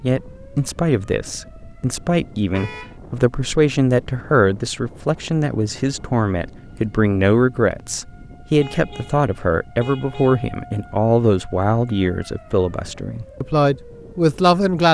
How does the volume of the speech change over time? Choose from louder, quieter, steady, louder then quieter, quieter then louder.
steady.